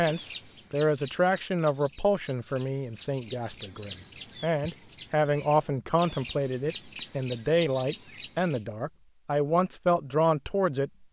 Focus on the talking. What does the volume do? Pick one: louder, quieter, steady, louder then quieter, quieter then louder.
quieter then louder.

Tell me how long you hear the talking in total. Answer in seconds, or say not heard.
11 s.